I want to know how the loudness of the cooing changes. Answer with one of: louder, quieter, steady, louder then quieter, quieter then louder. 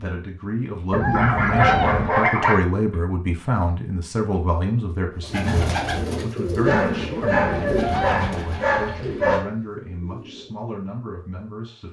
quieter.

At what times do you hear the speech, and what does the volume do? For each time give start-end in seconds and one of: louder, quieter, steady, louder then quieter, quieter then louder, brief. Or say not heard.
0.0-11.8 quieter.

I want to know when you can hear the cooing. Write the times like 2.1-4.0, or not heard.
5.2-10.7.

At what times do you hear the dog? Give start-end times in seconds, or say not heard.
1.1-3.0, 6.6-9.4.